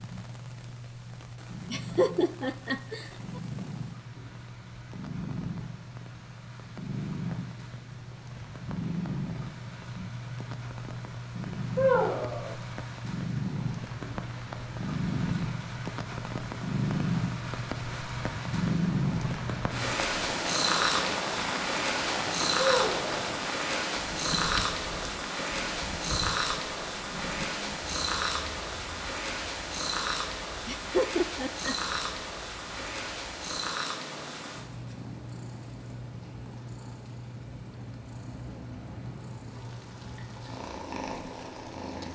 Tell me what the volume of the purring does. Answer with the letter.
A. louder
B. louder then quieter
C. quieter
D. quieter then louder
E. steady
B.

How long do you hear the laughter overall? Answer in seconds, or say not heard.
3 s.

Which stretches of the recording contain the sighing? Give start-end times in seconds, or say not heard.
11.8-12.6, 22.6-23.2.